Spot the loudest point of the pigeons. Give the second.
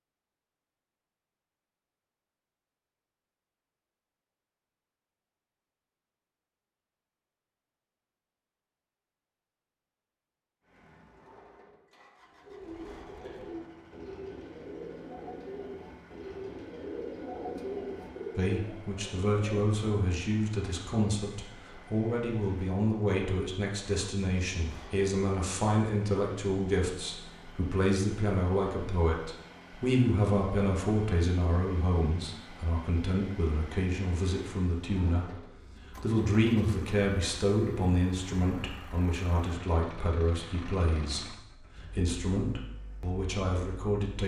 18 s.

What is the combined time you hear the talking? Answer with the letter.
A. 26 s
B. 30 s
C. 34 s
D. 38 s
A.